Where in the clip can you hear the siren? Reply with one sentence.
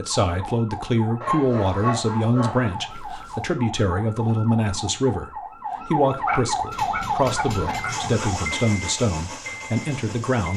You can hear the siren from 0.0 to 8.6 s.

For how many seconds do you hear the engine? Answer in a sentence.
You can hear the engine for 4 seconds altogether.